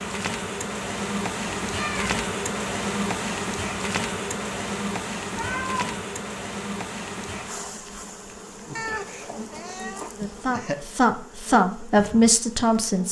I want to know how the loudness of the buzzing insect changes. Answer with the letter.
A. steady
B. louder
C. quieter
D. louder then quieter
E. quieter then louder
C.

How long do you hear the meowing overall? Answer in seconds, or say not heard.
3 s.